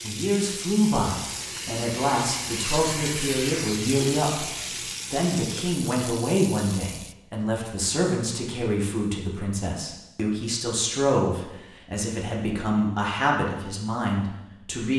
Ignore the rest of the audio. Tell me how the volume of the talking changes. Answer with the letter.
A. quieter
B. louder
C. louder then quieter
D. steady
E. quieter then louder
D.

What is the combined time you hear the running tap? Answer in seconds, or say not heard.
7 s.